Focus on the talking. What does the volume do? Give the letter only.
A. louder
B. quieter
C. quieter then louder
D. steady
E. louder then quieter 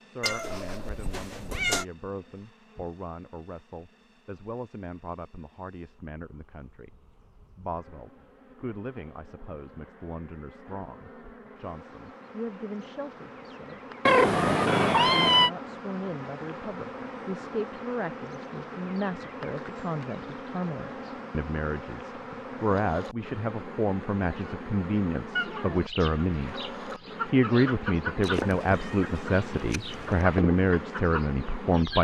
A.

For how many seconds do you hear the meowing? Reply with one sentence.
You can hear the meowing for 5 seconds altogether.